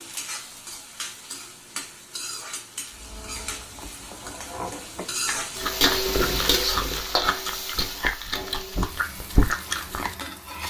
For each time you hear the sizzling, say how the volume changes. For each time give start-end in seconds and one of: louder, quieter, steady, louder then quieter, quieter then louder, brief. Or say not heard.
0.0-10.6 louder then quieter.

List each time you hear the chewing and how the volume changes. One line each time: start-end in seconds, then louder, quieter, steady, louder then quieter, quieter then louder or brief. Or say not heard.
2.9-10.1 louder.